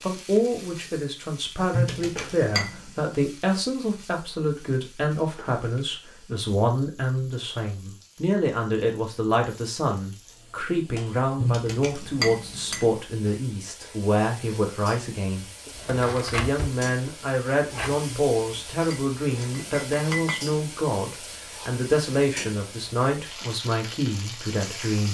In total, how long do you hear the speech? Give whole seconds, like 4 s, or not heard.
25 s.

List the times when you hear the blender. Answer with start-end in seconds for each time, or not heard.
not heard.